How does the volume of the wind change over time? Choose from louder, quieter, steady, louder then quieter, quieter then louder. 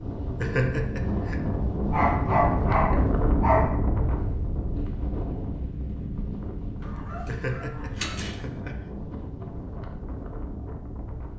quieter.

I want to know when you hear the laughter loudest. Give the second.
1 s.